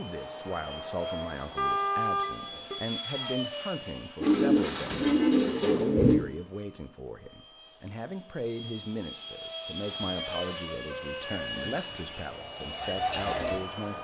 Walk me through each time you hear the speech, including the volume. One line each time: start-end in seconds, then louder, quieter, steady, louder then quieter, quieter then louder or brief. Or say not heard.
0.0-13.9 steady.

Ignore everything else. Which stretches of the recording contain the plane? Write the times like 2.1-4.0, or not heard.
0.0-13.9.